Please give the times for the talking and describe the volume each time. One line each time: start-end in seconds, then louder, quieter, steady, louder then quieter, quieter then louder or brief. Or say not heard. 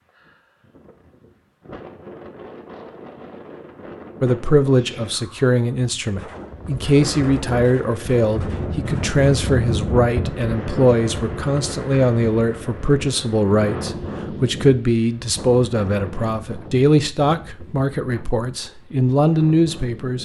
4.2-20.1 steady.